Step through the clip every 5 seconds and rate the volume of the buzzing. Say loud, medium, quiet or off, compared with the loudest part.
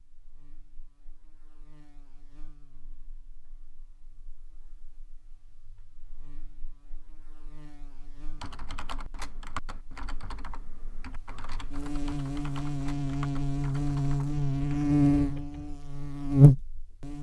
quiet, quiet, medium, loud.